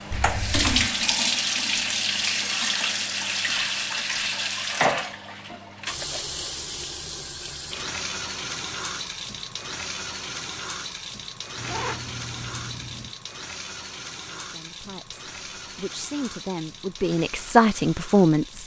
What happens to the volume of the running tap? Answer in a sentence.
The loudness of the running tap goes down.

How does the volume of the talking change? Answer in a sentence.
The volume of the talking goes up.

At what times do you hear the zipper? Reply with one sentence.
The zipper can be heard from 0.1 to 0.9 s and from 11.6 to 13.2 s.